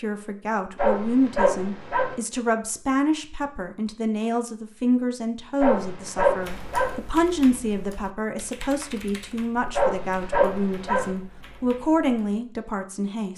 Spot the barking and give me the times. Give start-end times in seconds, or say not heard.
0.8-2.1, 5.6-7.0, 9.8-11.2.